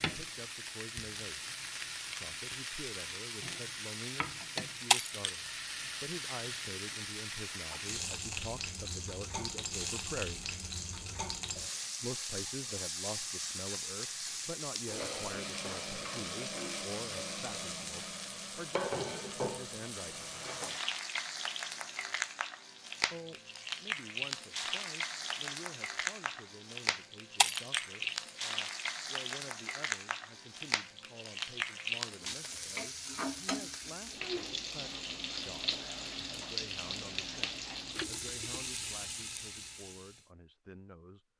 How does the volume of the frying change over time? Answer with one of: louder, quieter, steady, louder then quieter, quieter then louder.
steady.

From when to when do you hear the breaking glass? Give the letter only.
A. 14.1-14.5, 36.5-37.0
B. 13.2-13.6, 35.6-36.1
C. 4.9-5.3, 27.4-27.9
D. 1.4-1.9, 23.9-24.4
C.